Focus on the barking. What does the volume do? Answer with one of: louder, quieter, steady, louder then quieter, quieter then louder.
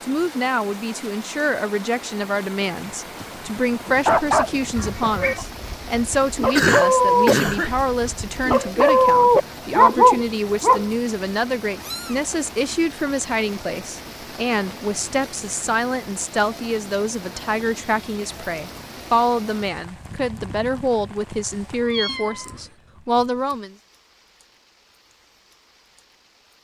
quieter then louder.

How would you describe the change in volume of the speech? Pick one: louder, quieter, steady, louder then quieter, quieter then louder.
steady.